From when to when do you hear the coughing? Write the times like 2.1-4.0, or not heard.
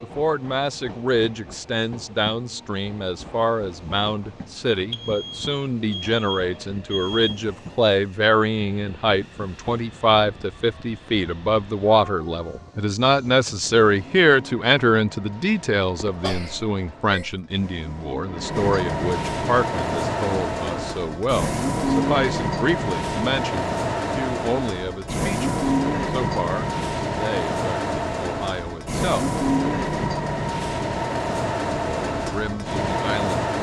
16.1-17.4.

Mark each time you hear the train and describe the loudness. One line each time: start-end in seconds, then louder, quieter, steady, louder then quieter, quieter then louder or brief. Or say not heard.
0.0-33.5 louder.